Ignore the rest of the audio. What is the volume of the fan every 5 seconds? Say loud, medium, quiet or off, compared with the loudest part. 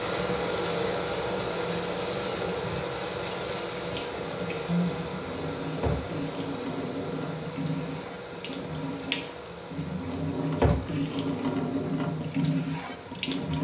loud, medium, quiet.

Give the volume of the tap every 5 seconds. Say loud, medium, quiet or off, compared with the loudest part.
medium, medium, loud.